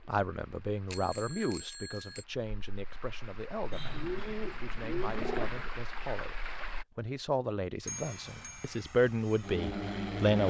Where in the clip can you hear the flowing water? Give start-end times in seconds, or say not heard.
0.0-6.8.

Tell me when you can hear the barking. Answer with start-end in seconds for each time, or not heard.
not heard.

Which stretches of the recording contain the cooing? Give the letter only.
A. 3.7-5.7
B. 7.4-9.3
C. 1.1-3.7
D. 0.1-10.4
A.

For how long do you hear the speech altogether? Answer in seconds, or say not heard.
10 s.